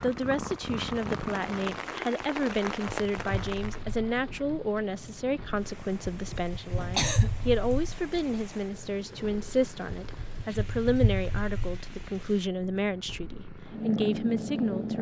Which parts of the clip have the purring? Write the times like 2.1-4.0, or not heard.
0.0-14.9.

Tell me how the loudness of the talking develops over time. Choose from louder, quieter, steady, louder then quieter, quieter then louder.
steady.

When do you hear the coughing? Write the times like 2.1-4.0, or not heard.
6.3-7.3.